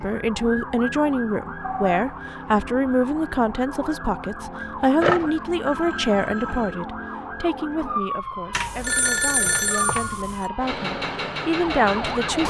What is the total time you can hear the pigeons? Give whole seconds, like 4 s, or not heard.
not heard.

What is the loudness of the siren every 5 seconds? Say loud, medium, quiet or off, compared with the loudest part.
medium, loud, loud.